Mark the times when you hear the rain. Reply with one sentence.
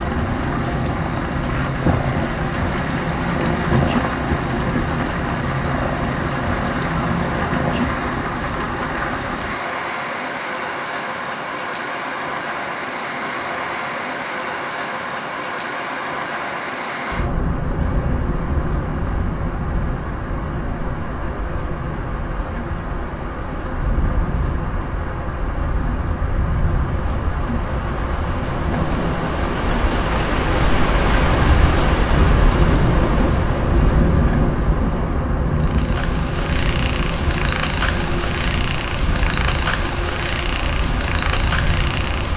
You can hear the rain from 0.0 to 42.3 s.